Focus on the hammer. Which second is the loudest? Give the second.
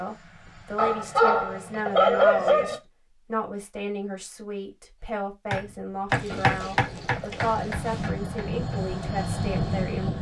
7 s.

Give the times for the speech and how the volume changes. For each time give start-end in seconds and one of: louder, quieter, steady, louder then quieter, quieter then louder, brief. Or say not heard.
0.0-10.1 steady.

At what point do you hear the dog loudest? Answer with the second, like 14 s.
2 s.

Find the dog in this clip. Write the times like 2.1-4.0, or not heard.
0.8-2.8, 6.2-7.5.